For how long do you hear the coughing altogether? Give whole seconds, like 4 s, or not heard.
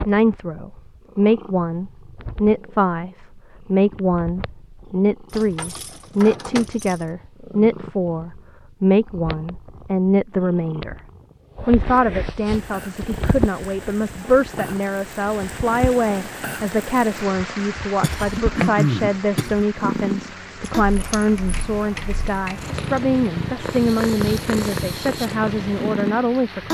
2 s.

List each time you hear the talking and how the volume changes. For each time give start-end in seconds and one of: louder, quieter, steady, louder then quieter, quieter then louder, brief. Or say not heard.
0.1-10.9 steady
11.7-26.6 steady.